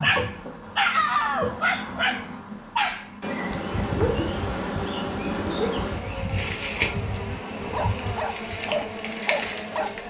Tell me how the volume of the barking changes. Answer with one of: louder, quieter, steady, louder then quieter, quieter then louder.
quieter then louder.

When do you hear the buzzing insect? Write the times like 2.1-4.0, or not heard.
0.0-10.0.